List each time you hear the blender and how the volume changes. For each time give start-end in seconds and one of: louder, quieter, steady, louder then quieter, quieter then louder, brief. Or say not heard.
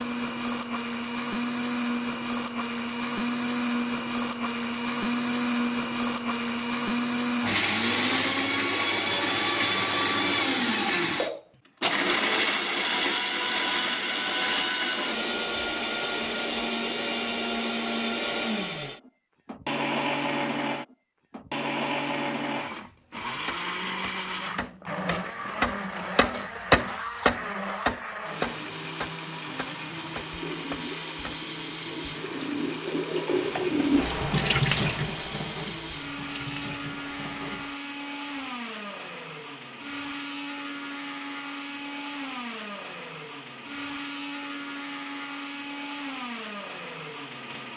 0.0-47.7 quieter.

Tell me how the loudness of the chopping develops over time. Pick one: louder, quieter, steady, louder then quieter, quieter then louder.
louder then quieter.